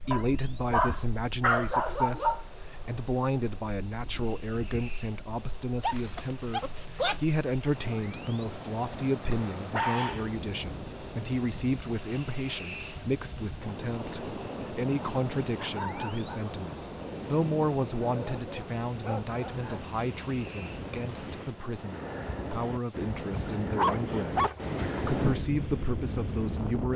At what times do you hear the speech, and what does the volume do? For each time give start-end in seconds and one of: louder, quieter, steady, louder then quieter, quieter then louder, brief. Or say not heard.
0.0-26.9 steady.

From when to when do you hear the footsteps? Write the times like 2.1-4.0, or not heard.
not heard.